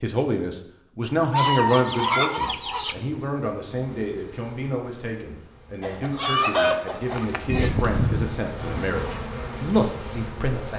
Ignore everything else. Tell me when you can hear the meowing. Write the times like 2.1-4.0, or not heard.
1.0-1.9, 7.5-8.3.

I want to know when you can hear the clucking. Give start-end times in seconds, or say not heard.
1.4-3.0, 5.8-7.8.